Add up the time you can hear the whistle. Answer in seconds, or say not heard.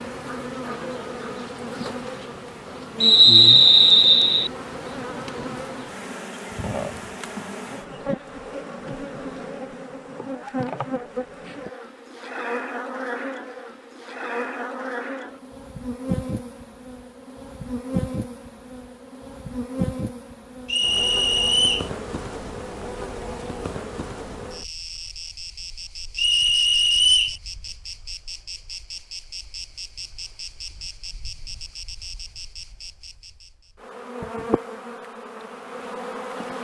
4 s.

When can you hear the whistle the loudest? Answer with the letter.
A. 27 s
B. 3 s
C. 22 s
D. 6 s
B.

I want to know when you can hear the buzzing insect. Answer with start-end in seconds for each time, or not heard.
0.0-36.5.